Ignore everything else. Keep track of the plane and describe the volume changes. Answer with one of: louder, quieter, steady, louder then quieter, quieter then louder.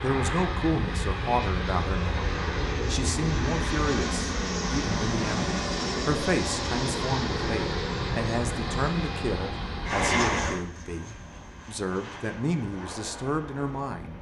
quieter.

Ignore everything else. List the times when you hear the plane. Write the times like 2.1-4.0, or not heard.
0.0-14.1.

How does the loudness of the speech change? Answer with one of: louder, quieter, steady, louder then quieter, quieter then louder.
steady.